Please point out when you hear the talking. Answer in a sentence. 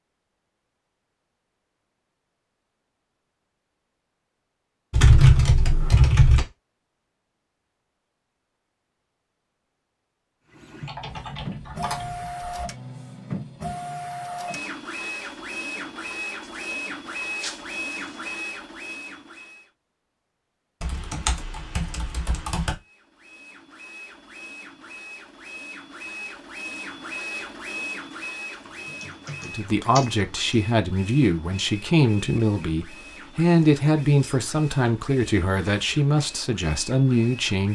The talking can be heard from 29.4 to 37.6 s.